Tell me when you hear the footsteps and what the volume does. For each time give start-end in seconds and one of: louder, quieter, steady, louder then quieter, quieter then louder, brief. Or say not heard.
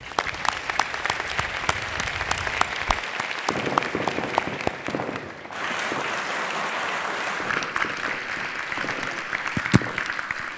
not heard.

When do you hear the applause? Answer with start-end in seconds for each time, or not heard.
0.0-10.5.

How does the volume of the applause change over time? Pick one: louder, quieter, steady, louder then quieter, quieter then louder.
steady.